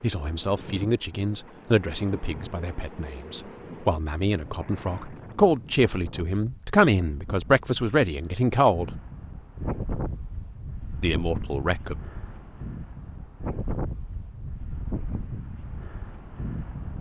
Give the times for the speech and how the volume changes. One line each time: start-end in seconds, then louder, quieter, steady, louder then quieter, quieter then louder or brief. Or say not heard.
0.0-8.9 quieter then louder
11.0-11.9 brief.